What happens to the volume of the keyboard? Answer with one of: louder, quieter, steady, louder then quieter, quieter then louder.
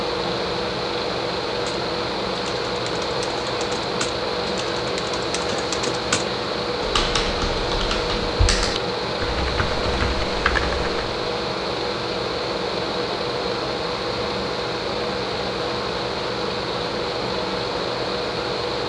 louder.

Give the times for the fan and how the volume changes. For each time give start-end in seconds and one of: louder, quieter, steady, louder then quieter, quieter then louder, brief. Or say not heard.
0.0-18.8 steady.